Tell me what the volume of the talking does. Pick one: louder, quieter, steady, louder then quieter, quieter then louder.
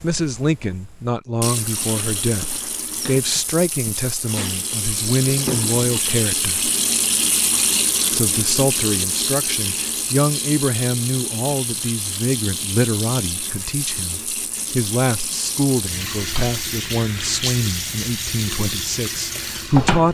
steady.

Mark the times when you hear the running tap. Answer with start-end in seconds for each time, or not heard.
0.0-20.0.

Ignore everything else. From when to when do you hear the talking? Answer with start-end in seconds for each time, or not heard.
0.0-6.7, 8.1-20.0.